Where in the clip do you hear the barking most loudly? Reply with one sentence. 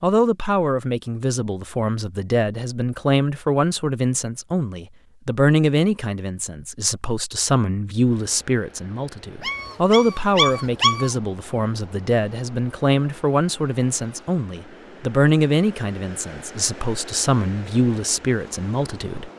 The volume of the barking peaks at 11 seconds.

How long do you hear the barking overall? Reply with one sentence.
You can hear the barking for 2 seconds altogether.